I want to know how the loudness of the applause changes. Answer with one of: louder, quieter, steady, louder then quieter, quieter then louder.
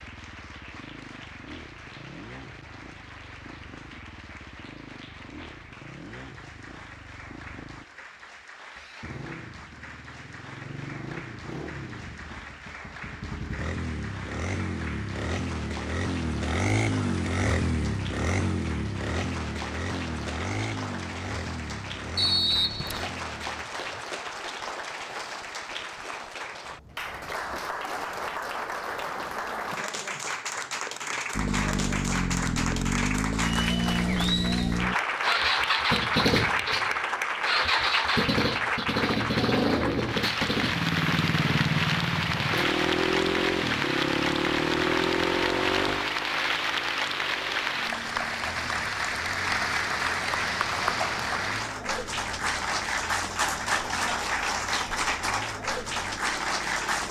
louder.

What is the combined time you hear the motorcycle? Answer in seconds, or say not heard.
49 s.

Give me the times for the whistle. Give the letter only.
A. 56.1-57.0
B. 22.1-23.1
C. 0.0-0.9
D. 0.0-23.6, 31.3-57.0
B.